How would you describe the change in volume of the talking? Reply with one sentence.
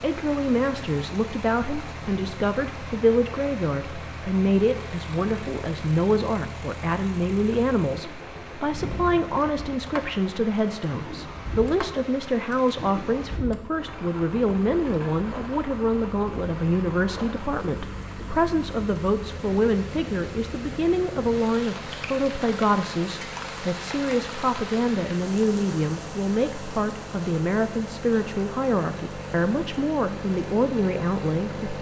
The volume of the talking stays about the same.